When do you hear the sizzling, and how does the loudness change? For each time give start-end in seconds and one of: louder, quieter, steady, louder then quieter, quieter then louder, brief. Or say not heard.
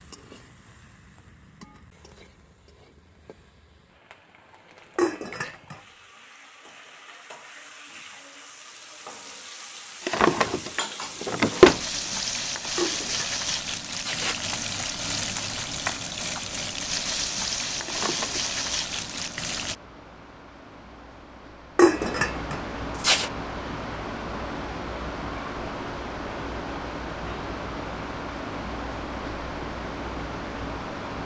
0.0-19.8 louder.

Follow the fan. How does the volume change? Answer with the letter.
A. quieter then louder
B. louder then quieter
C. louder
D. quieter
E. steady
C.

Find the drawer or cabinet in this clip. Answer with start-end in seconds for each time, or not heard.
10.1-11.8, 17.9-18.5.